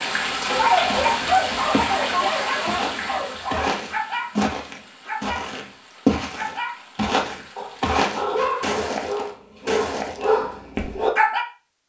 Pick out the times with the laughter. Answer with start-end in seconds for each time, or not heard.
not heard.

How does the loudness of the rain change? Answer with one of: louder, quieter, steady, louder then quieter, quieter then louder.
quieter.